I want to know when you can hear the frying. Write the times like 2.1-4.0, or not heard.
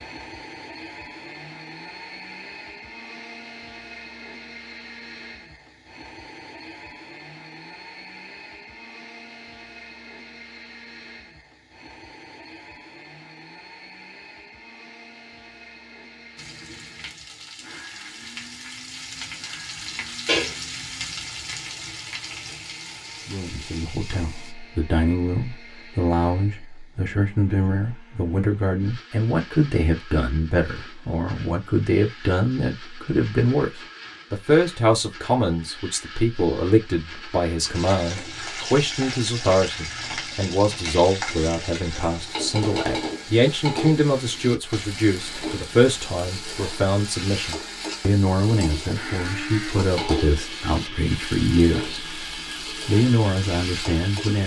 16.4-24.6, 37.7-54.4.